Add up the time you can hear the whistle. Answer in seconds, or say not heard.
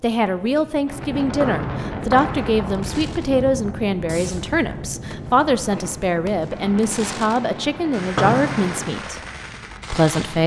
2 s.